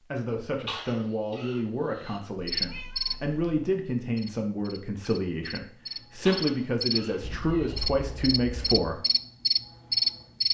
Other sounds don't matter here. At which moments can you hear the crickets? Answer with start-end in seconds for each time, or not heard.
2.5-10.5.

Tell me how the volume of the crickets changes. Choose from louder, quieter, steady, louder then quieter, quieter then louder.
quieter then louder.